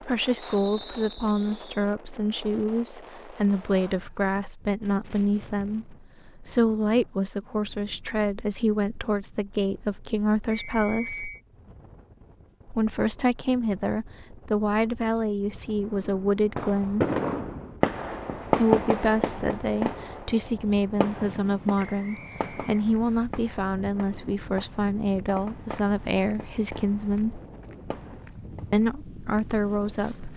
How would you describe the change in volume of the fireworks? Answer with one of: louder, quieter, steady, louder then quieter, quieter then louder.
quieter.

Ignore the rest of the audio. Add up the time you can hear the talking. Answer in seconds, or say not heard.
26 s.